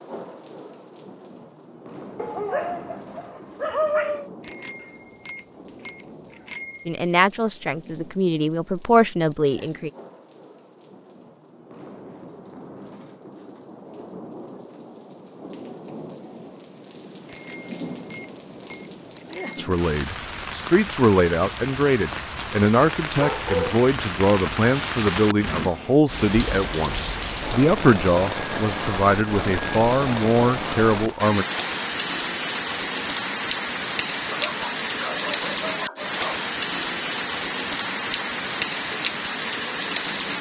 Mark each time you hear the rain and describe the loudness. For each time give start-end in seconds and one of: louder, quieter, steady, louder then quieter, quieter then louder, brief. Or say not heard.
0.0-40.3 louder.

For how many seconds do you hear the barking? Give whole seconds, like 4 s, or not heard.
5 s.